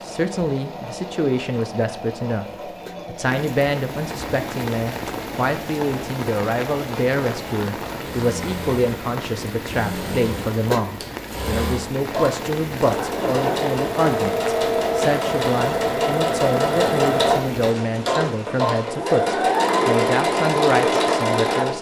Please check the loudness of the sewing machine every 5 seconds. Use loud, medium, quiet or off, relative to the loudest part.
quiet, quiet, medium, loud, loud.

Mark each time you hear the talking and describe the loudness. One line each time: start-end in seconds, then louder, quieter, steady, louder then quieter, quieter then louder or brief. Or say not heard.
0.0-2.5 brief
3.0-21.7 steady.